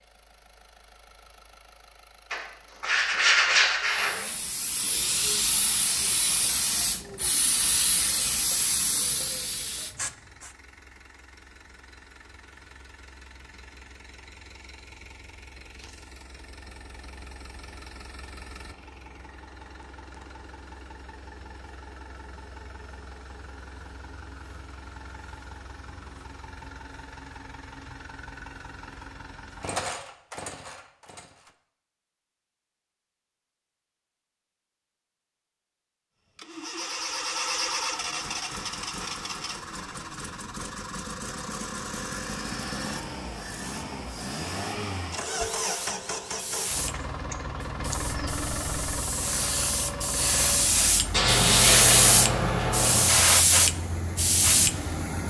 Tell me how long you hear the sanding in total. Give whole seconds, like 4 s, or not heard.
4 s.